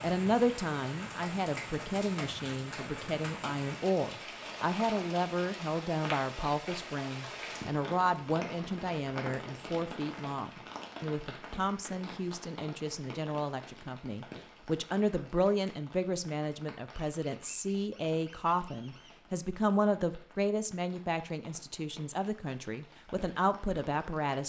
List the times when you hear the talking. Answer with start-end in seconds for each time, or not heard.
0.0-24.4.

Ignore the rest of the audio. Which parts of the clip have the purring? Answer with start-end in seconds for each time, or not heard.
not heard.